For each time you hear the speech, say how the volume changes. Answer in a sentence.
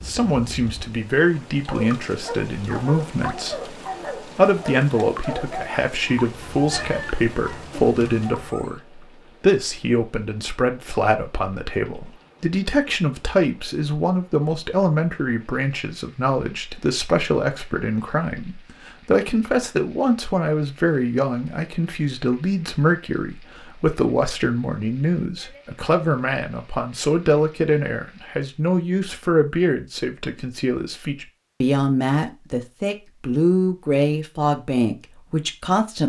You can hear the speech from 0.1 to 36.0 s, at a steady volume.